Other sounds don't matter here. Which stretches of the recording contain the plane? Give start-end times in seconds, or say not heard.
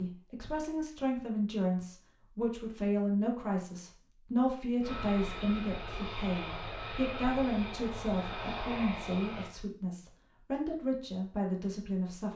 4.8-9.5.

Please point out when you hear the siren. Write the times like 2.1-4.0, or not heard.
not heard.